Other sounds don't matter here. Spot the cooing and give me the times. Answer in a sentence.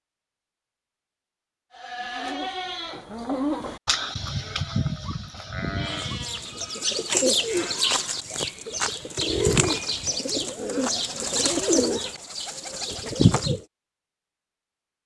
You can hear the cooing from 5.8 to 13.7 s.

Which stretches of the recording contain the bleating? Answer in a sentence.
The bleating can be heard from 1.7 to 8.4 s.